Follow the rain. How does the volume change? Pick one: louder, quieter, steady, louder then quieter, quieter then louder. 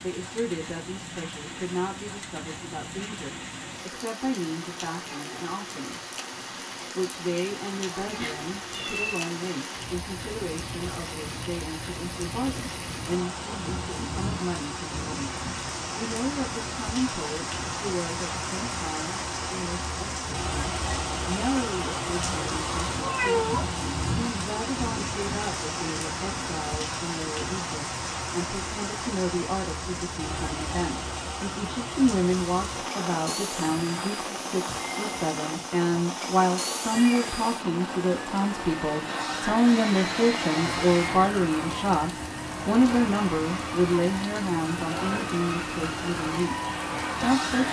louder then quieter.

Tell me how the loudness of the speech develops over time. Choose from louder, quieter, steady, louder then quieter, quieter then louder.
louder.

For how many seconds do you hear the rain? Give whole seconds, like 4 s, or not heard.
47 s.